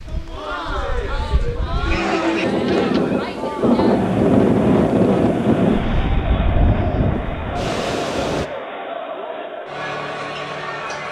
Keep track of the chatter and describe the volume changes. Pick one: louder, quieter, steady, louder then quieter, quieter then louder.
steady.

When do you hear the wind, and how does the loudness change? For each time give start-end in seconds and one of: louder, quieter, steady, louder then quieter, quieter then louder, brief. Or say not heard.
0.0-8.5 louder then quieter.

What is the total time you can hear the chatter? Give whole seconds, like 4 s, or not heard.
11 s.